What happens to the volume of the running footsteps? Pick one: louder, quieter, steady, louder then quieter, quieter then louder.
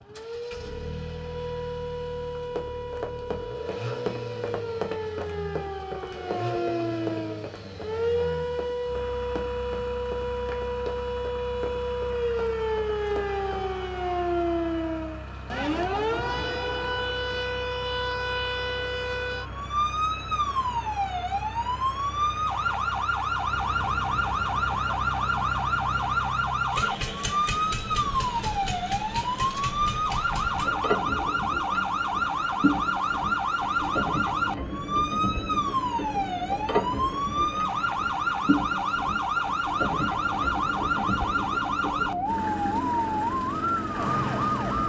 quieter.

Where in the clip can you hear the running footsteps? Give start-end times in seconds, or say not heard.
2.4-13.7.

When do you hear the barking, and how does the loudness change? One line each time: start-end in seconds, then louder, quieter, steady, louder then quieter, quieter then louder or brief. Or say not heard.
not heard.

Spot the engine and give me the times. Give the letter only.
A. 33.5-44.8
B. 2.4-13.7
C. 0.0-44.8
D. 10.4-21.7
C.